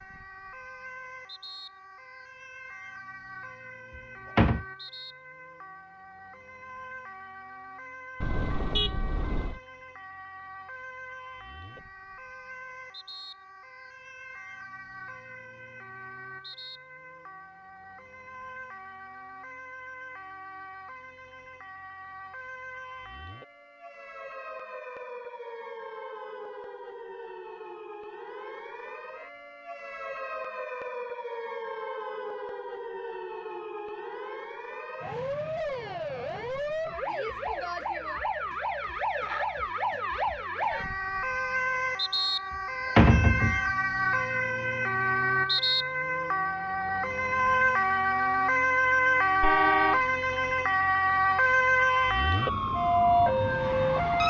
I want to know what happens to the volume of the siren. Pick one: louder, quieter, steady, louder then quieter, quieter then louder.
louder.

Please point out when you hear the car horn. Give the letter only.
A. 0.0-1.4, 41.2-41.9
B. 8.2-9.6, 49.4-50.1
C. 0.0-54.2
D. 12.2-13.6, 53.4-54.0
B.